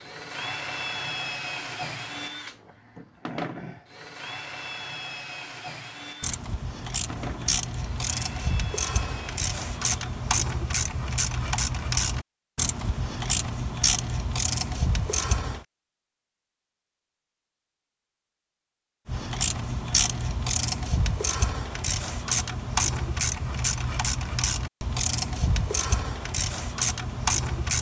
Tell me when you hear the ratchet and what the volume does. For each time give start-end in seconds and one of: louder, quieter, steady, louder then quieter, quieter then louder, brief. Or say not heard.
6.2-15.7 steady
19.1-27.7 steady.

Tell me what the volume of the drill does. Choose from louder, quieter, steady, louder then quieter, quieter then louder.
quieter.